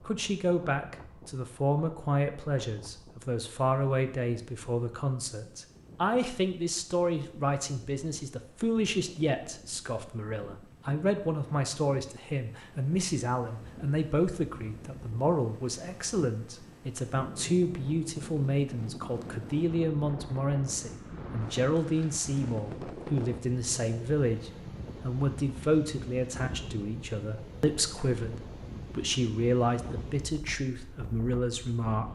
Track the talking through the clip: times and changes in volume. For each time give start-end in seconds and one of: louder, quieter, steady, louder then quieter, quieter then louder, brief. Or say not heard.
0.0-32.1 steady.